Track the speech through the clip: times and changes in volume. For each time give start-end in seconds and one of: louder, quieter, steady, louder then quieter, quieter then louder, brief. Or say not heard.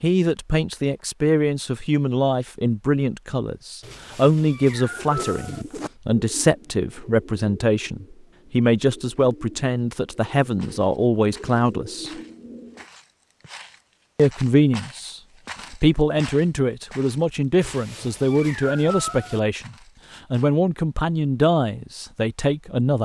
0.0-12.1 steady
14.2-22.9 steady.